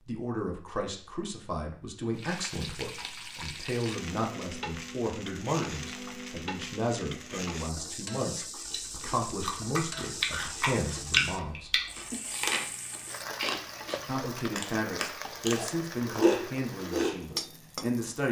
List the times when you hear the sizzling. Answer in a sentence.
You can hear the sizzling from 2.1 to 18.2 s.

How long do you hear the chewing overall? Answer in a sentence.
You can hear the chewing for 9 seconds altogether.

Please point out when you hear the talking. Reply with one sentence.
You can hear the talking from 0.1 to 11.8 s and from 14.1 to 18.2 s.